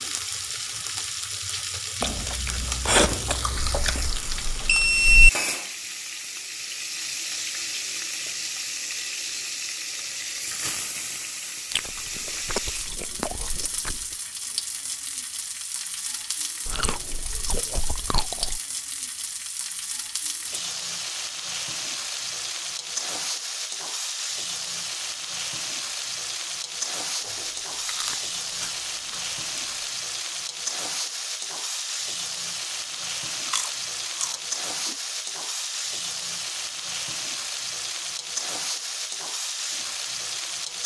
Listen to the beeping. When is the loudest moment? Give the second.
5 s.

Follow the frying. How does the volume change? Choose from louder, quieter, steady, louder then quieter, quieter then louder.
steady.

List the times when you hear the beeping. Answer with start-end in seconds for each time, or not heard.
3.5-5.3.